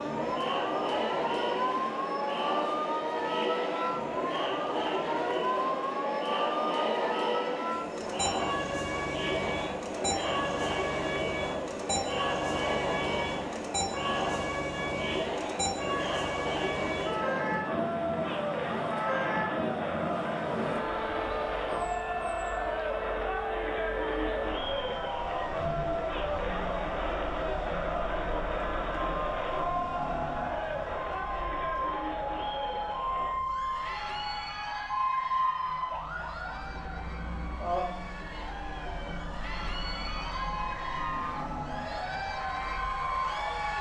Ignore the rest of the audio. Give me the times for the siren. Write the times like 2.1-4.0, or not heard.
0.0-43.7.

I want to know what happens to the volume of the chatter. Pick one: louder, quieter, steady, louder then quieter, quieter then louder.
quieter.